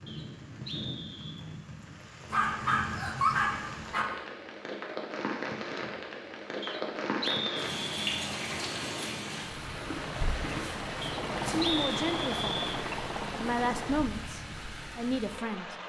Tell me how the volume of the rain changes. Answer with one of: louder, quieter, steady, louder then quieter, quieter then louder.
louder then quieter.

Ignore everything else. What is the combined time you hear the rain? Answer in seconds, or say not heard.
16 s.